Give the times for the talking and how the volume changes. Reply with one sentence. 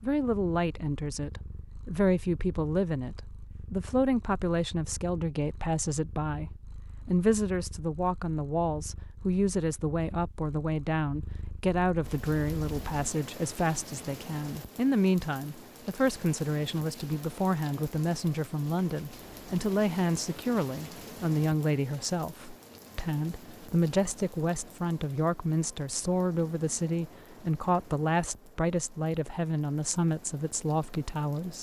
The talking can be heard from 0.0 to 31.5 s, at a steady volume.